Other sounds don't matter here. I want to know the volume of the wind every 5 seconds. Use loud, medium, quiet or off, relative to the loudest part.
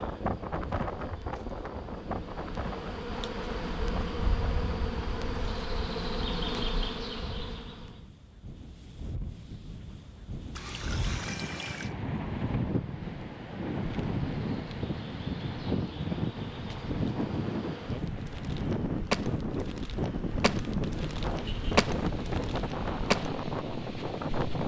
medium, quiet, loud, loud, loud.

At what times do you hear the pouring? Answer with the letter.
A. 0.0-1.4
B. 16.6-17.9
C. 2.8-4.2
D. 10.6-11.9
D.